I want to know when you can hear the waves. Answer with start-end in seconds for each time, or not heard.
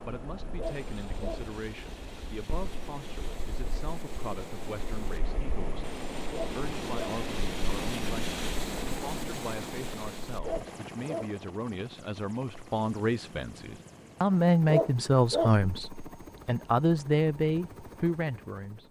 0.0-10.4.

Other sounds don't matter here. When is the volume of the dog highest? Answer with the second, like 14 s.
15 s.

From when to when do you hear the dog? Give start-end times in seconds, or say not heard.
0.6-1.4, 6.3-7.2, 10.4-11.3, 14.7-15.6.